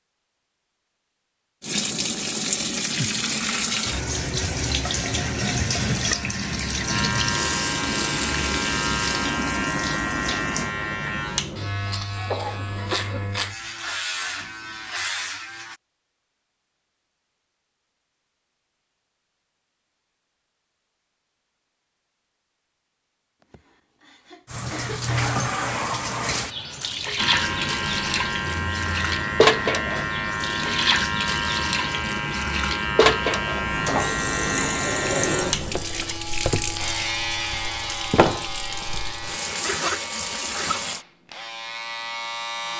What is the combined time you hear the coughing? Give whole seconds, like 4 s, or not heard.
3 s.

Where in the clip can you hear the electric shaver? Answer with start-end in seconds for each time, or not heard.
4.9-15.8, 27.1-42.7.